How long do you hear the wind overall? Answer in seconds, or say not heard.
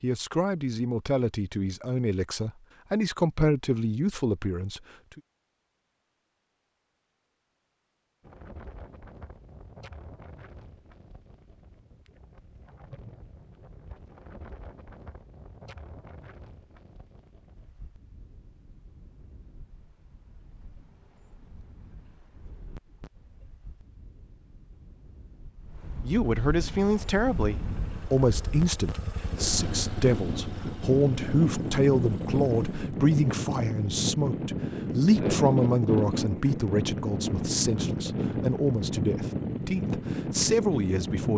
33 s.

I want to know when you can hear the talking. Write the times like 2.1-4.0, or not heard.
0.0-5.2, 26.0-41.3.